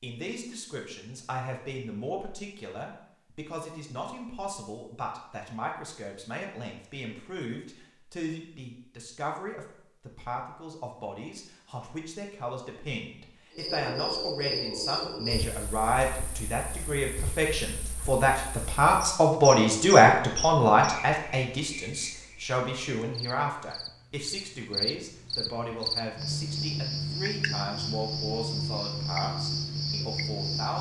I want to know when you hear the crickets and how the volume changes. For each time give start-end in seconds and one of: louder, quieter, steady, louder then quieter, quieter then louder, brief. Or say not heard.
13.6-30.7 quieter then louder.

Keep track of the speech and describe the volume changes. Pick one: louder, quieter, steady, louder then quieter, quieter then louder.
louder then quieter.